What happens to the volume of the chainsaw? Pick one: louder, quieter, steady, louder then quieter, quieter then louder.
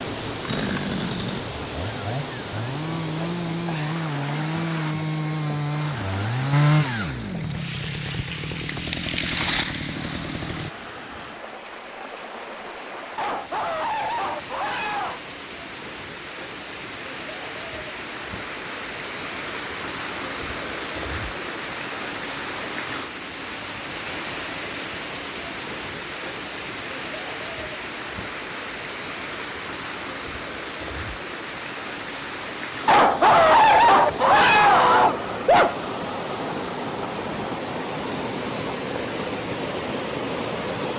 louder.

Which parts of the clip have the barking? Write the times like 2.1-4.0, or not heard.
13.2-15.2, 32.9-35.8.